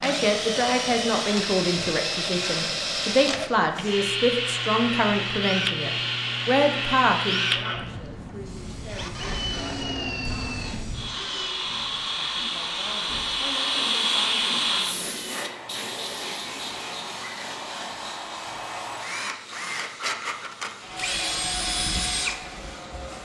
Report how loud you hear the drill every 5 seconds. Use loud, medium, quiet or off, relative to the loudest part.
loud, loud, medium, medium, loud.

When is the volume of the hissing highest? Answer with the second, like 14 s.
14 s.